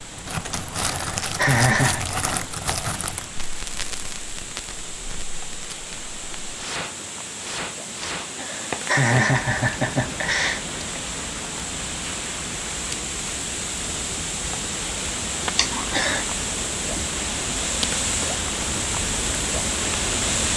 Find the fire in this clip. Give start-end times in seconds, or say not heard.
0.0-20.5.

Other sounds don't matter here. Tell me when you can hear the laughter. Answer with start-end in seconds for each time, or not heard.
0.5-2.0, 8.2-10.6, 15.6-16.2.